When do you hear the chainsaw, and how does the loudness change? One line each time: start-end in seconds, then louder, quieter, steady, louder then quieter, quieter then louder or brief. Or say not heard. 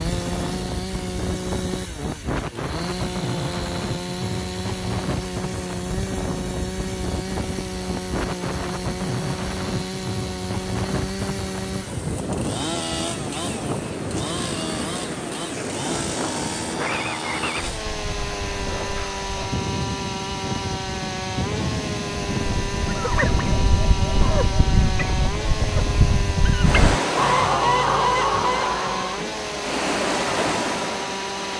0.0-31.5 steady.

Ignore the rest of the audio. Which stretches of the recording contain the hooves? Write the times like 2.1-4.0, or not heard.
not heard.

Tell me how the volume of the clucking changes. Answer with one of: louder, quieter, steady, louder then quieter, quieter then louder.
louder.